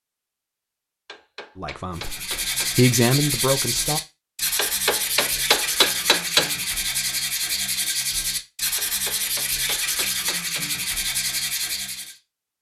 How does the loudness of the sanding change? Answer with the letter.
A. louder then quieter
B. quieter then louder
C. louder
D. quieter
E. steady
E.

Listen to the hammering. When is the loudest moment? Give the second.
6 s.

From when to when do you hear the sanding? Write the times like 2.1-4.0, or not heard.
1.9-12.2.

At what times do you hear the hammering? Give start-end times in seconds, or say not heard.
1.1-2.7, 4.5-6.5, 8.8-10.7.